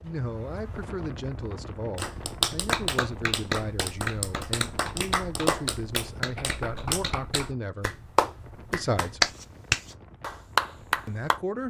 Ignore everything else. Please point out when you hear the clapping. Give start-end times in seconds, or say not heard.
1.9-11.4.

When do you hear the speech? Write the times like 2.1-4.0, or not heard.
0.0-9.3, 11.1-11.6.